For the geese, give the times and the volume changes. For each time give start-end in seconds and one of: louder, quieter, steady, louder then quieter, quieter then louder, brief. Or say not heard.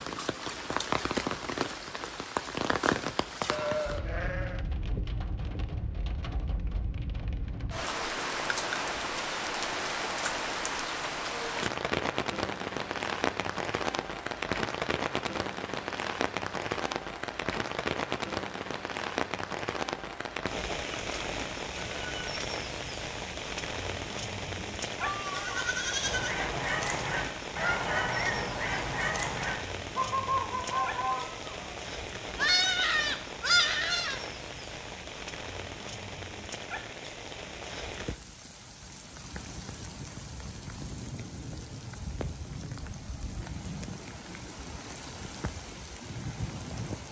26.0-31.7 steady.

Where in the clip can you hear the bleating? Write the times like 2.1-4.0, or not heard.
3.5-4.7, 24.6-26.4, 32.4-34.2.